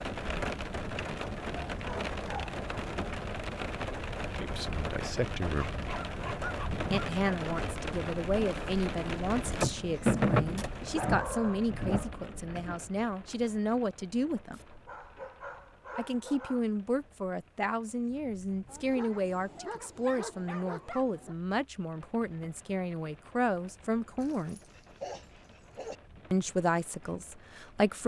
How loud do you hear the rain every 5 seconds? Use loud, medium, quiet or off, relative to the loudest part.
loud, loud, loud, quiet, quiet, quiet.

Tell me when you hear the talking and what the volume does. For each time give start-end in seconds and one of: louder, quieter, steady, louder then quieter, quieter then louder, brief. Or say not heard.
4.4-5.8 brief
6.9-14.6 steady
15.9-24.6 steady
26.3-28.0 brief.